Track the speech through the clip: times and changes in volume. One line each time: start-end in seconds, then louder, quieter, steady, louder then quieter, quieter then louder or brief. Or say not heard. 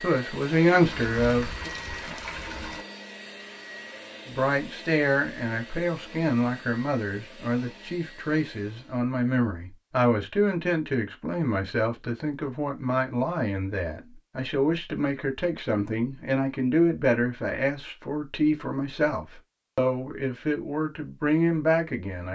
0.0-1.7 brief
4.2-22.3 steady.